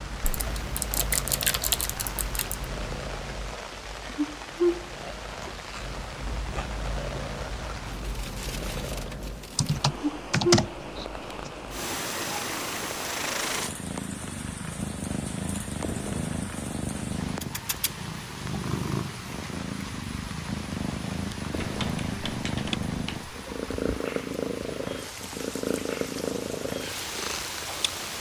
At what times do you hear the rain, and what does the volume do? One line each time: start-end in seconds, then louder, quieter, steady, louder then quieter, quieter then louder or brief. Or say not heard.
0.0-28.1 steady.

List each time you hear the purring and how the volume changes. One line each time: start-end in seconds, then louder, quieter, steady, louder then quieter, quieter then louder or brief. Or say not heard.
0.0-28.1 steady.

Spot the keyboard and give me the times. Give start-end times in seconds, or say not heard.
0.2-2.6, 9.6-11.5, 21.6-23.4.